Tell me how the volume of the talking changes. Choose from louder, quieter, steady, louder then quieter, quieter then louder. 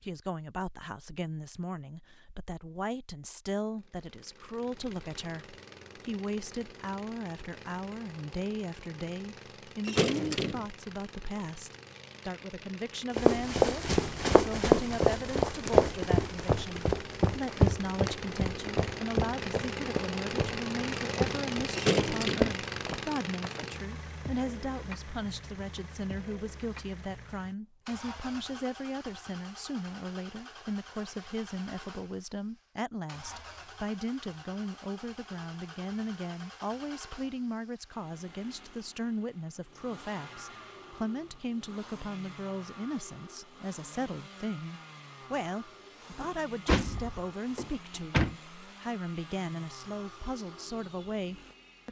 steady.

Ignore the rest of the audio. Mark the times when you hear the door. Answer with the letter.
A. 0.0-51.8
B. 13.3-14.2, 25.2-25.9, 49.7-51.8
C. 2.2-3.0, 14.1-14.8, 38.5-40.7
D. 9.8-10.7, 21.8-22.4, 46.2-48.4
D.